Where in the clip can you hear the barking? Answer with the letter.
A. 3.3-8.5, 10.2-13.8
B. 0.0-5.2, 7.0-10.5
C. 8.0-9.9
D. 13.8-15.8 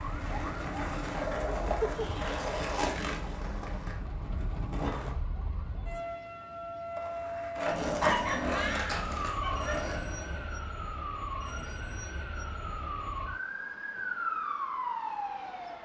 C.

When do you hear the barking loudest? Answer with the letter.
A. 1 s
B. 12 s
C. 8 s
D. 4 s
C.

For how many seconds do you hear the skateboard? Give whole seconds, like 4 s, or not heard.
9 s.